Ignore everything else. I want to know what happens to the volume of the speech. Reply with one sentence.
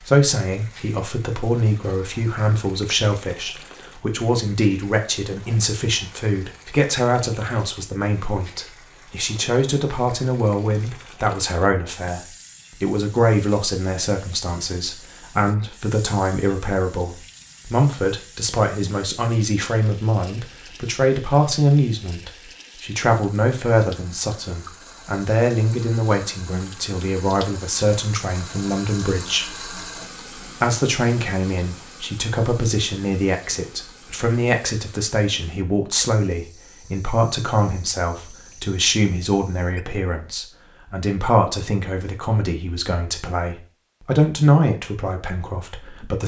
The volume of the speech stays about the same.